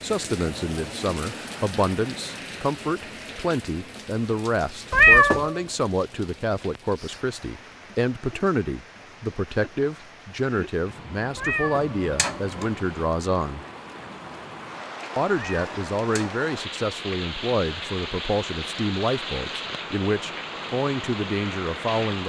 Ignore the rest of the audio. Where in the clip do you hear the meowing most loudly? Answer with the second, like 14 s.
5 s.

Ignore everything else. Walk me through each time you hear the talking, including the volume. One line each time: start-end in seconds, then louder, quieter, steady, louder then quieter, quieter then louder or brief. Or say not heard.
0.0-13.6 steady
15.2-22.2 steady.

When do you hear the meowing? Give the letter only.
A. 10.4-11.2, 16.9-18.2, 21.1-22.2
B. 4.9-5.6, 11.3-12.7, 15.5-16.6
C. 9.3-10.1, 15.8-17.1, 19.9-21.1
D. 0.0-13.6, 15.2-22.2
B.